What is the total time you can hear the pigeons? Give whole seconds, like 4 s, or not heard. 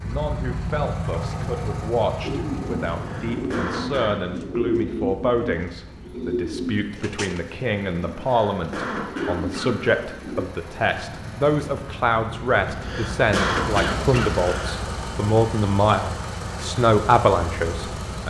8 s.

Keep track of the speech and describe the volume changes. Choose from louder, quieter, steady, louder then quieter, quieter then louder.
louder.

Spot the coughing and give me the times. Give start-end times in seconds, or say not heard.
3.0-4.2, 8.2-9.8, 12.7-14.8.